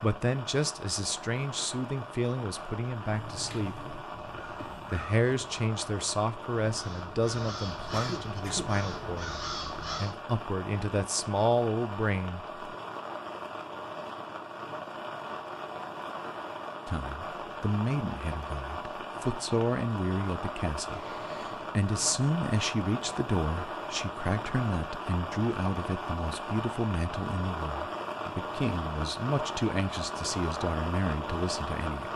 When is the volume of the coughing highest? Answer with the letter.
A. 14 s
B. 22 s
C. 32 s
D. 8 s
D.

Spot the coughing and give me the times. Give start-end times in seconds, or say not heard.
7.9-8.7, 20.9-21.6.